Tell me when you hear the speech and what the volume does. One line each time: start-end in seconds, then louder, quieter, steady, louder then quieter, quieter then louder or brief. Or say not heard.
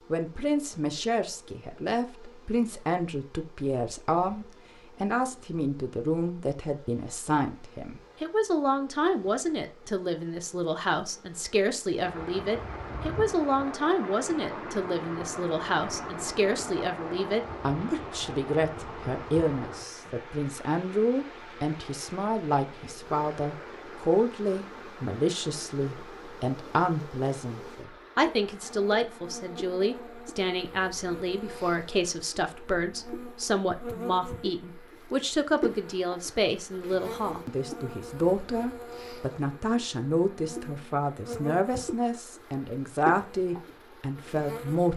0.1-44.9 steady.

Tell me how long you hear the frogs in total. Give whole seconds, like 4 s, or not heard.
not heard.